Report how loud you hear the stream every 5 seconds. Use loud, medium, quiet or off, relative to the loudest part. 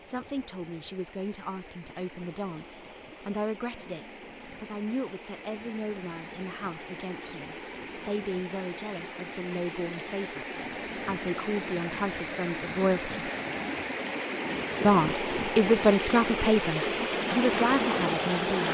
quiet, quiet, medium, loud.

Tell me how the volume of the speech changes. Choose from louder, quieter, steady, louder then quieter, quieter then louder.
louder.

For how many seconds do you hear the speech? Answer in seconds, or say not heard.
17 s.